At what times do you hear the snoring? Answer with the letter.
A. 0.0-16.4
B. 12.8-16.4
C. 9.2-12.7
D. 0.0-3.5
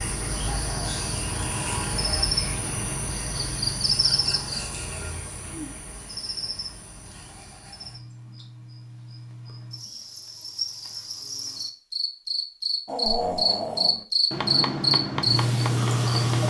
B.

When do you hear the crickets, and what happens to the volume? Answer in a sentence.
You can hear the crickets from 0.0 to 16.4 s, getting quieter then louder.